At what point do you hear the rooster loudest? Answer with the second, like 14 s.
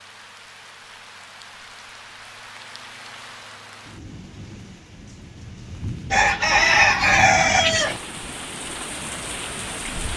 7 s.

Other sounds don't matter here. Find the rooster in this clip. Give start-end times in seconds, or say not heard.
6.1-8.0.